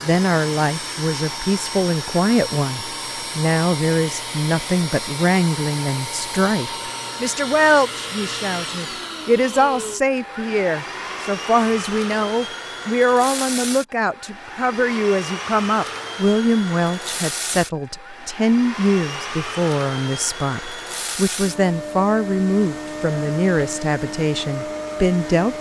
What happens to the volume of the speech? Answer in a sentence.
The volume of the speech stays about the same.